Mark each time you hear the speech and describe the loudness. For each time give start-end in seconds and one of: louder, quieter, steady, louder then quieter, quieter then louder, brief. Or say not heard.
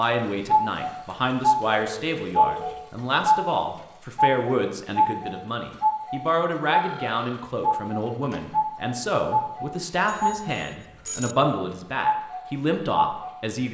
0.0-13.6 steady.